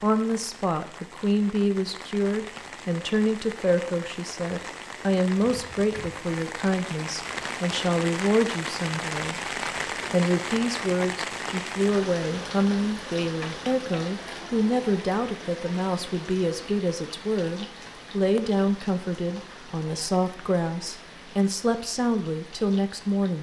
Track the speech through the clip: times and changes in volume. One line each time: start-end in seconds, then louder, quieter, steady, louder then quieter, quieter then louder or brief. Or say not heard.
0.0-23.3 steady.